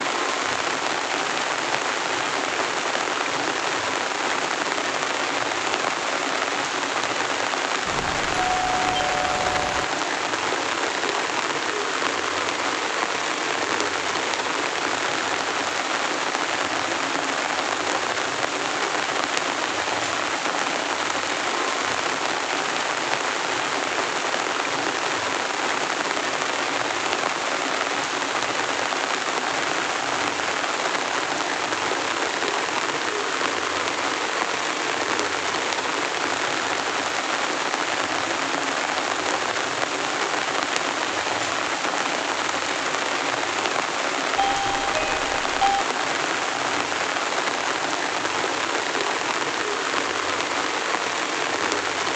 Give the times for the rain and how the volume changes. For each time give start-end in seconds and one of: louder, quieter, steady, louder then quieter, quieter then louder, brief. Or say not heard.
0.0-52.1 steady.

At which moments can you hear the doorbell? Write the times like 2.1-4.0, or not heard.
7.8-9.8, 44.4-45.9.